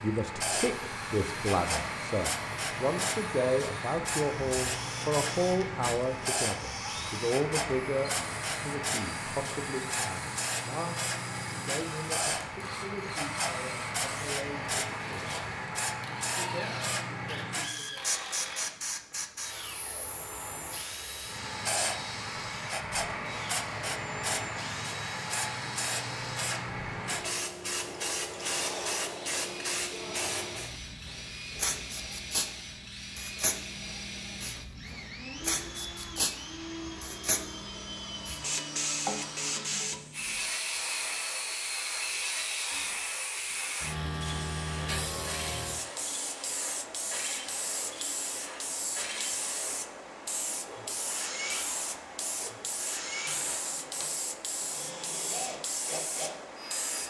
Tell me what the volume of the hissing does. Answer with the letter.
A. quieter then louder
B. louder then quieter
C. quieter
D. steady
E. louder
D.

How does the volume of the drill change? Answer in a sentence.
The volume of the drill stays about the same.